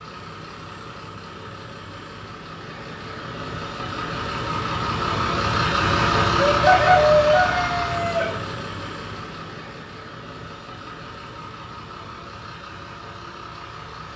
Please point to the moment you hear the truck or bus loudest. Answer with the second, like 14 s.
6 s.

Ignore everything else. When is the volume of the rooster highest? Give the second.
7 s.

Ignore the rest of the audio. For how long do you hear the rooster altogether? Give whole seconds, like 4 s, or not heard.
2 s.